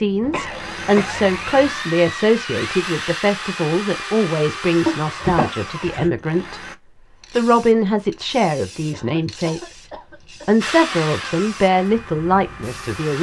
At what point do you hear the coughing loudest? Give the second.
5 s.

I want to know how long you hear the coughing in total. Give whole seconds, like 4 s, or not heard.
5 s.